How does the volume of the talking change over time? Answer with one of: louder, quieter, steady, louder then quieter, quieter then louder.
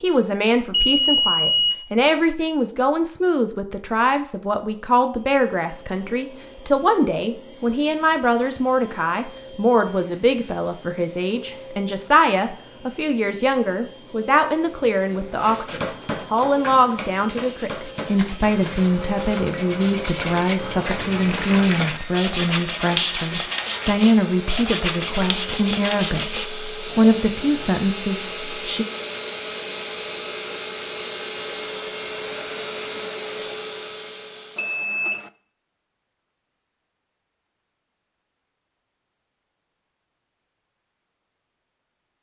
steady.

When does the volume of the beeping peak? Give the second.
1 s.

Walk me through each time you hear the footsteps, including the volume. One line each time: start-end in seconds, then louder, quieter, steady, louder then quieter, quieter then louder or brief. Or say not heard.
not heard.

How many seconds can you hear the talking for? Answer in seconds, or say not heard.
29 s.